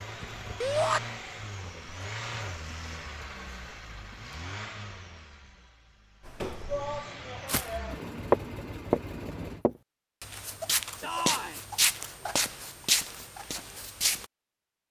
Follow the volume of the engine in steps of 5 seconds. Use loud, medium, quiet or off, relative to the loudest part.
loud, loud, off.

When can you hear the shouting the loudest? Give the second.
1 s.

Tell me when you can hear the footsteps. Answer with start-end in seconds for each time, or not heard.
6.2-7.7, 8.3-14.2.